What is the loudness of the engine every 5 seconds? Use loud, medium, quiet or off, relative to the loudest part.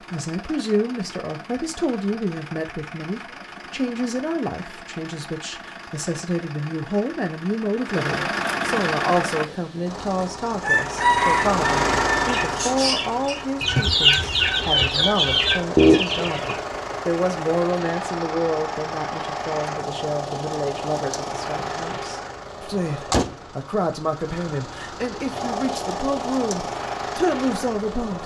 quiet, loud, loud, loud, loud, loud.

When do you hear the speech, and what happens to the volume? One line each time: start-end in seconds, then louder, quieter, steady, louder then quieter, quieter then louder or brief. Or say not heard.
0.1-28.2 steady.